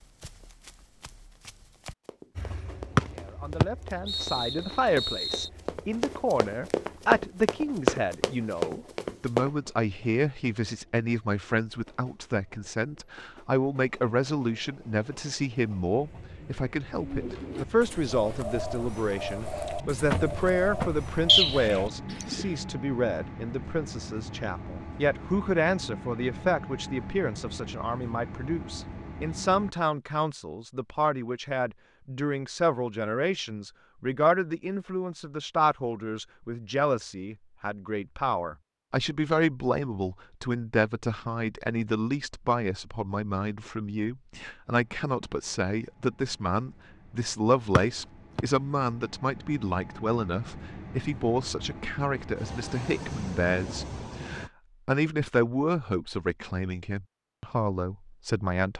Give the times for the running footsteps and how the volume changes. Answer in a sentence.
You can hear the running footsteps from 0.0 to 9.5 s, getting louder.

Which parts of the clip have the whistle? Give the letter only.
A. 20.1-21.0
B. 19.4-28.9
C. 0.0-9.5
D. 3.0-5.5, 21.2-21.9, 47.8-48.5
D.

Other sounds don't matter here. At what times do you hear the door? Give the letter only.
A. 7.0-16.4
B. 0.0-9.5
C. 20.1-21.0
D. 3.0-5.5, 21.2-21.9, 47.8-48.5
C.